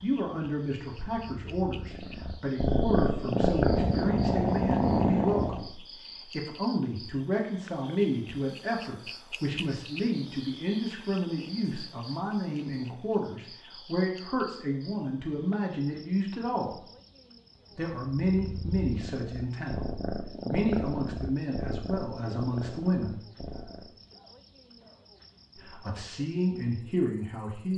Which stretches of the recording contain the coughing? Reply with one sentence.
The coughing can be heard from 23.4 to 25.1 s.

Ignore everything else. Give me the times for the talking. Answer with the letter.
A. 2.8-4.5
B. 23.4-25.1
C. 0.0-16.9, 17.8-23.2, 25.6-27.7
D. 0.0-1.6
C.